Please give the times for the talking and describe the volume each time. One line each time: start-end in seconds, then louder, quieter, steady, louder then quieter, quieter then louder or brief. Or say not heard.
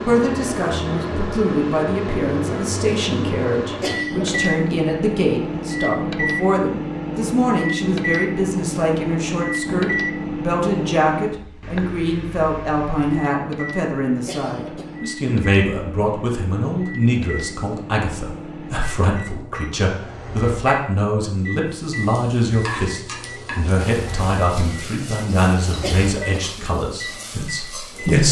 0.1-28.2 steady.